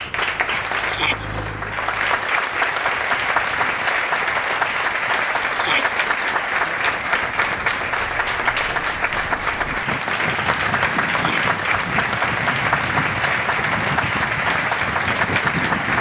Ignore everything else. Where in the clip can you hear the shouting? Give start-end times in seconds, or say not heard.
0.8-1.3, 5.5-6.0, 11.1-11.6.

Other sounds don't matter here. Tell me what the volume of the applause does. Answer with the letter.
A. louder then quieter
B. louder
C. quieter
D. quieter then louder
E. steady
E.